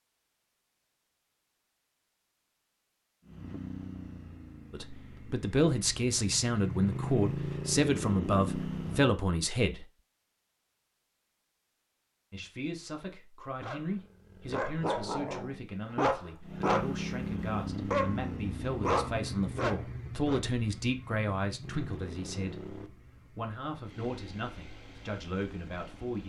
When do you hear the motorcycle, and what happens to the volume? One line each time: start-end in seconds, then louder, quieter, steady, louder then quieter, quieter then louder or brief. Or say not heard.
3.2-9.2 quieter then louder
16.4-26.2 quieter.